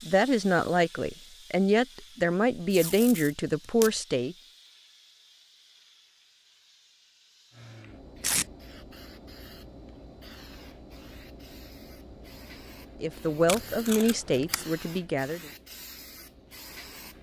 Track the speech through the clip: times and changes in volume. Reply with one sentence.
The speech can be heard from 0.0 to 4.3 s, at a steady volume; and briefly from 13.0 to 15.5 s.